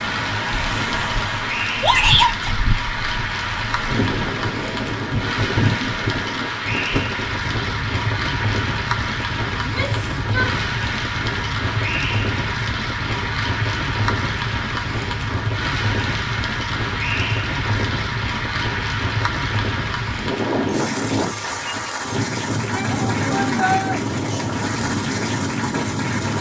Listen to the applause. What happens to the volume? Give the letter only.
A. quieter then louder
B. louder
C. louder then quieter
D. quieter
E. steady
E.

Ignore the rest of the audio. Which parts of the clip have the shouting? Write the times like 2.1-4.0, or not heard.
1.8-2.5, 9.6-10.6, 22.7-24.0.